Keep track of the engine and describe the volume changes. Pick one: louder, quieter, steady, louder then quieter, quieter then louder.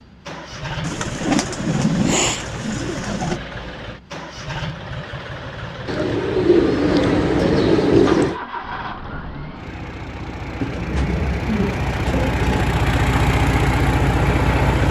louder.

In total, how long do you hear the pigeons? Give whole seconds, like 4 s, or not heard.
7 s.